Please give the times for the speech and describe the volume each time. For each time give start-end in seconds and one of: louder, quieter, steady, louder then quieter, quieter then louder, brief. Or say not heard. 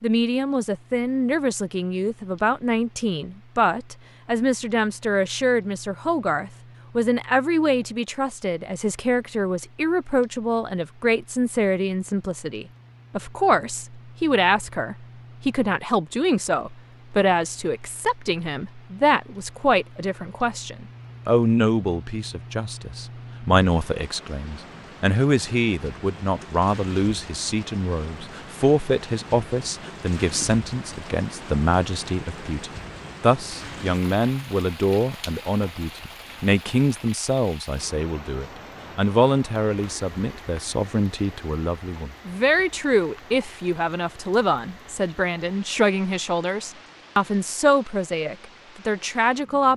0.0-49.7 steady.